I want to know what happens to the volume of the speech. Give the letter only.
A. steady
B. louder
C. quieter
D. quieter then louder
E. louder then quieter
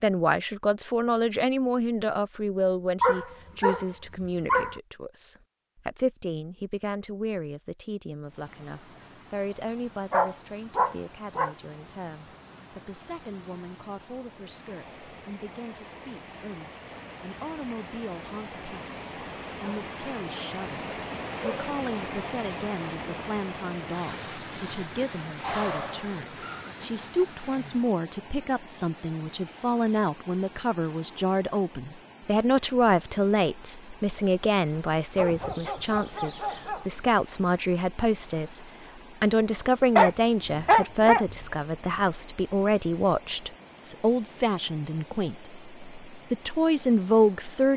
D.